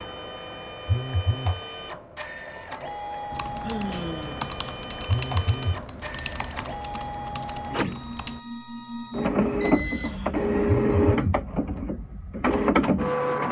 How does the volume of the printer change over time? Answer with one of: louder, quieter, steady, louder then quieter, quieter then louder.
louder.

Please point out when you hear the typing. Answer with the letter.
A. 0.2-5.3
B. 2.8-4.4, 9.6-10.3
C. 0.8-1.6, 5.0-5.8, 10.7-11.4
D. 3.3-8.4
D.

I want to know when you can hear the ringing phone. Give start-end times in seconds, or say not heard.
0.8-1.6, 5.0-5.8, 10.7-11.4.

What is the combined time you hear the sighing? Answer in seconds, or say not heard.
2 s.